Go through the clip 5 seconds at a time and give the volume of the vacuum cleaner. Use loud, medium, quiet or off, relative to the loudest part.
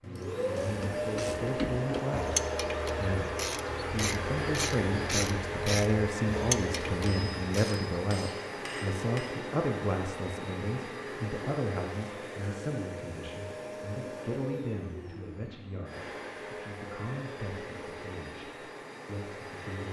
loud, loud, medium, medium.